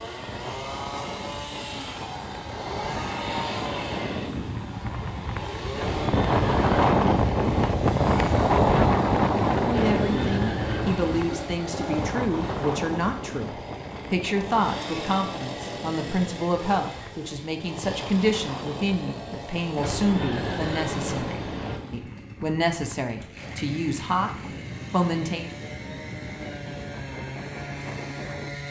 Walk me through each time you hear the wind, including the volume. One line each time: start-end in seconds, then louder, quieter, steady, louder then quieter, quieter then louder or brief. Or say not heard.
0.0-28.6 louder then quieter.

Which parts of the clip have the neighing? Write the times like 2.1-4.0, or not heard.
5.8-7.8, 9.7-11.2, 19.8-21.8.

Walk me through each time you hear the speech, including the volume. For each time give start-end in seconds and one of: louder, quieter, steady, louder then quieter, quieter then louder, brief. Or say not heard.
9.6-24.3 steady
24.9-25.5 brief.